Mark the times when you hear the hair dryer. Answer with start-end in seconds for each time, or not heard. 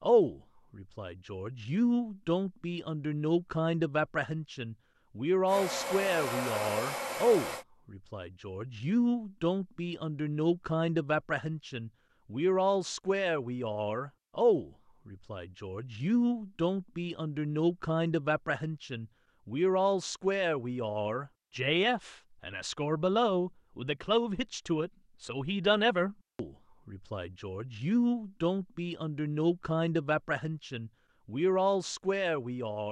5.5-7.7.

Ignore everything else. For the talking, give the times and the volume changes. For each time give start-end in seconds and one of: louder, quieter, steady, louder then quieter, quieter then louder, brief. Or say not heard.
0.0-32.8 steady.